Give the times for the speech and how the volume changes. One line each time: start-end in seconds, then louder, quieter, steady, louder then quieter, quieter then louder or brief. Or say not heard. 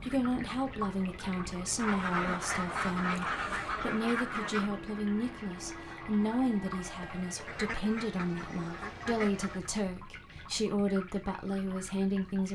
0.0-12.4 steady.